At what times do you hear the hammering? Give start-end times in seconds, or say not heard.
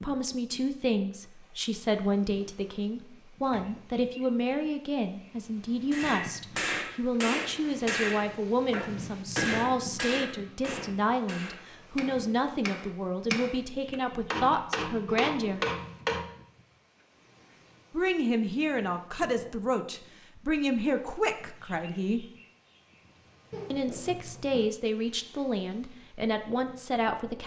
5.9-16.3.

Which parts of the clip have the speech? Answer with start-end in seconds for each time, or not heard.
0.0-15.6, 17.9-22.2, 23.7-27.4.